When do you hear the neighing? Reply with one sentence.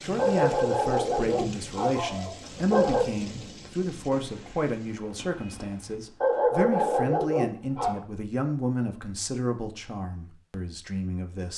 The neighing can't be heard in this clip.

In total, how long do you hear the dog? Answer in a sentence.
The dog can be heard for 5 seconds in total.